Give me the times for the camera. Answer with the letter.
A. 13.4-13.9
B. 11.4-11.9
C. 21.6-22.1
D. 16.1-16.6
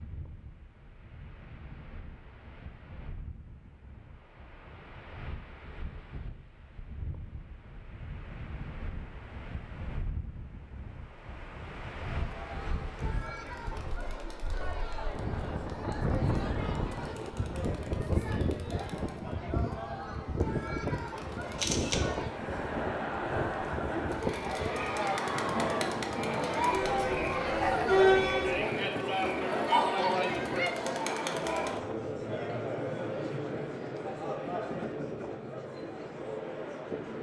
C.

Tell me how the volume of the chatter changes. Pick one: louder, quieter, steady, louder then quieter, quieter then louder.
louder then quieter.